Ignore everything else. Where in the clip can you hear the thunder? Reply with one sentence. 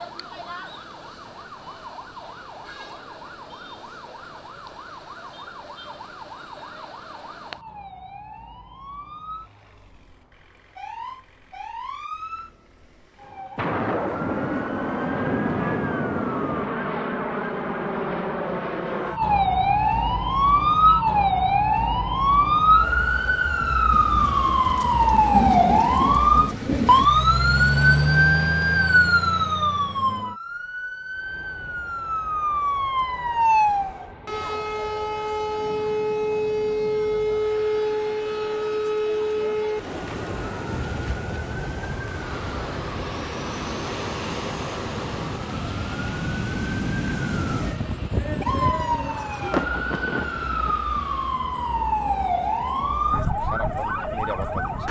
The thunder can be heard from 13.6 to 16.8 s, from 23.9 to 27.1 s and from 49.5 to 50.9 s.